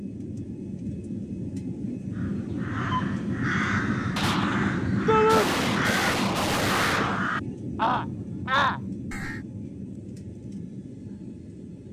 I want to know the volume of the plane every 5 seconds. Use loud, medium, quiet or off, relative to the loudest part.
loud, loud, medium.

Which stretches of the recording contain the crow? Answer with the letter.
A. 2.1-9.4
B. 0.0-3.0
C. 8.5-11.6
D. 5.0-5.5
A.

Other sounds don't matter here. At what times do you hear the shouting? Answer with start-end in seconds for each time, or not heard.
5.0-5.5.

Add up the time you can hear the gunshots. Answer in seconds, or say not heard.
3 s.